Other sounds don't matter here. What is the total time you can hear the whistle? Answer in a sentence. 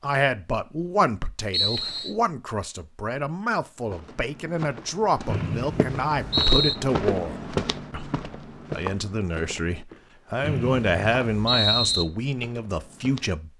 You can hear the whistle for 4 seconds altogether.